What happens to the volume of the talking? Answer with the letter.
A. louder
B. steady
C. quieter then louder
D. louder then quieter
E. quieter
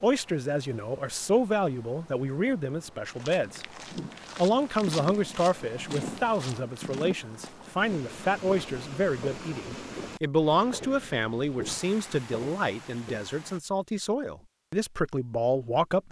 B.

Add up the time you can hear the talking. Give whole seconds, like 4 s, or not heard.
15 s.